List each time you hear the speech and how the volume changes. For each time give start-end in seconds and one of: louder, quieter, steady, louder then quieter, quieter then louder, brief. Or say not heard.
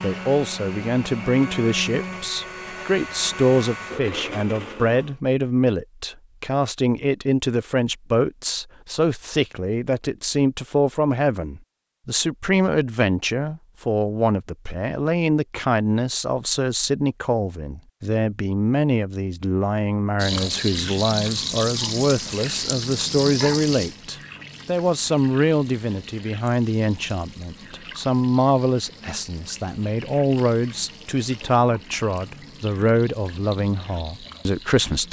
0.0-35.0 steady.